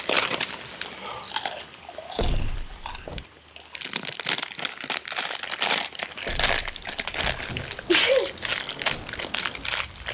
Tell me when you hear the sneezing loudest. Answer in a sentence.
The loudest moment of the sneezing is at 8 seconds.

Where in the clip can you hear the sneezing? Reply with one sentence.
You can hear the sneezing from 0.7 to 1.2 s and from 7.3 to 8.3 s.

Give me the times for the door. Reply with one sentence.
You can hear the door from 2.1 to 3.2 s and from 6.2 to 7.8 s.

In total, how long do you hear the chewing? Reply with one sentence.
You can hear the chewing for 10 seconds altogether.